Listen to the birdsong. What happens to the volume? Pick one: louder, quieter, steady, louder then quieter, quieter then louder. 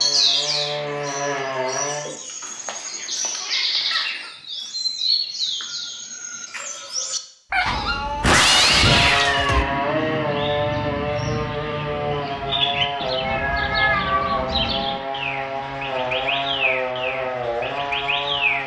steady.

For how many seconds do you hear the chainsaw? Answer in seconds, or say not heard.
12 s.